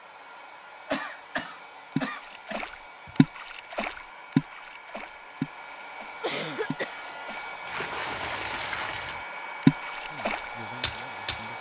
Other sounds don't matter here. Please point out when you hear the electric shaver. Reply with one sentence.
You can't hear the electric shaver here.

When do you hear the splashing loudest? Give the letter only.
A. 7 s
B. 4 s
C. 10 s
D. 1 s
C.